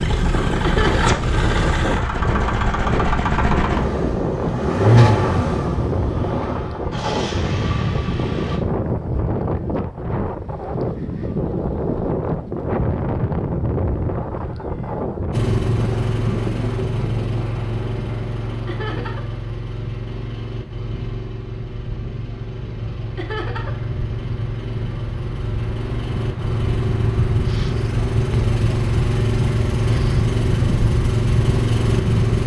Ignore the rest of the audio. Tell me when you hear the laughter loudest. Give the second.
1 s.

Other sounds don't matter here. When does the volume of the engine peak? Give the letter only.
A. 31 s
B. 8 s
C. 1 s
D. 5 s
D.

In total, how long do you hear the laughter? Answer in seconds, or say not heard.
2 s.